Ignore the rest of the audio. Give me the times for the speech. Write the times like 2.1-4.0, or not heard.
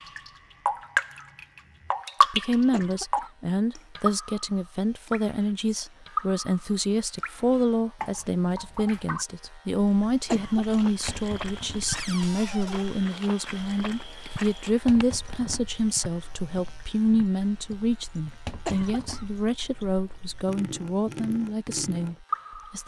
2.3-22.8.